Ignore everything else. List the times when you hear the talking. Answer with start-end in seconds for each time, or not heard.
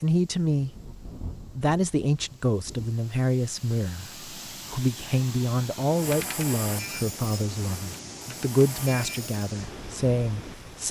0.0-0.8, 1.6-10.8.